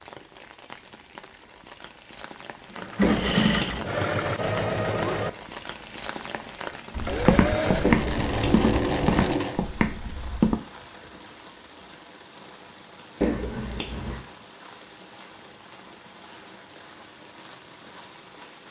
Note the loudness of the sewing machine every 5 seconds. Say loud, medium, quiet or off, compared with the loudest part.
loud, loud, off, off.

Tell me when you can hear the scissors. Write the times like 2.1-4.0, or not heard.
3.0-3.9, 7.8-8.6, 13.2-14.2.